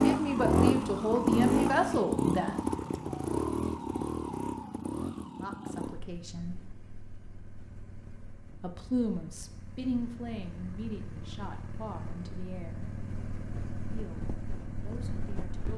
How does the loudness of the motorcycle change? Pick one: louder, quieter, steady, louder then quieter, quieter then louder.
quieter then louder.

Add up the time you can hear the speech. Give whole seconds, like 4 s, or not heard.
10 s.